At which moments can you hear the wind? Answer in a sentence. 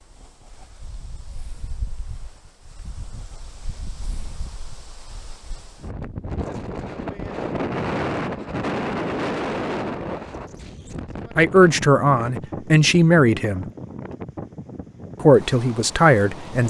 You can hear the wind from 0.0 to 16.6 s.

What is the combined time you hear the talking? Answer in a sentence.
You can hear the talking for 4 seconds altogether.